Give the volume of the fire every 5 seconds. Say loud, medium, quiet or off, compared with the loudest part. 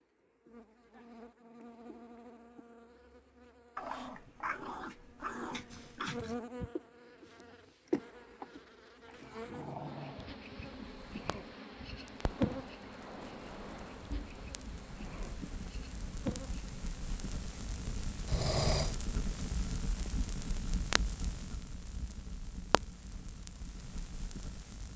off, off, medium, loud, loud.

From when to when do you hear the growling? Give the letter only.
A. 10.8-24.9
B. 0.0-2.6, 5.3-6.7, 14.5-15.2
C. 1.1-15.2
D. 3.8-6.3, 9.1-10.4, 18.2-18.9
D.